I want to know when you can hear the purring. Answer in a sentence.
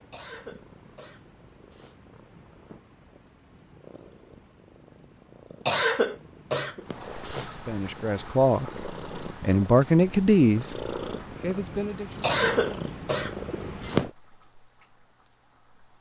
You can hear the purring from 0.0 to 14.1 s.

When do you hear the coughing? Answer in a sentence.
You can hear the coughing from 0.1 to 1.9 s, from 5.7 to 7.5 s and from 12.2 to 14.1 s.